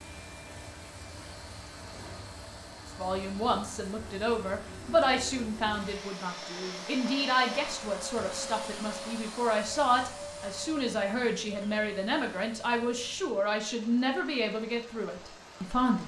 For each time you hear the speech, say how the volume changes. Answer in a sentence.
You can hear the speech from 3.0 to 16.0 s, at a steady volume.